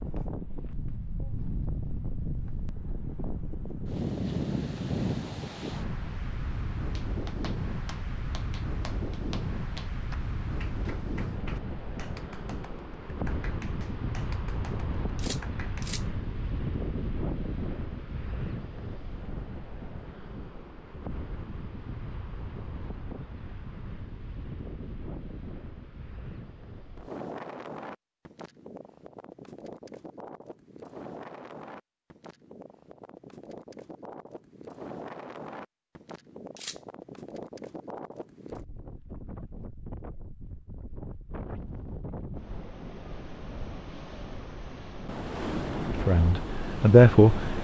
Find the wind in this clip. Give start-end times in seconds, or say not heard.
0.0-47.5.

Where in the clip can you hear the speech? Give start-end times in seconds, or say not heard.
45.9-47.5.